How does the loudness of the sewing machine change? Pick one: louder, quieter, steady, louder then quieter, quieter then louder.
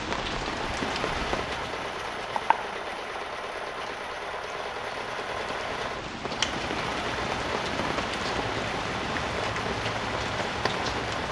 steady.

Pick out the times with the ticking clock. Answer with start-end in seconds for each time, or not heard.
not heard.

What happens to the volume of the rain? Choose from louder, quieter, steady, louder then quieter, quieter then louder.
quieter then louder.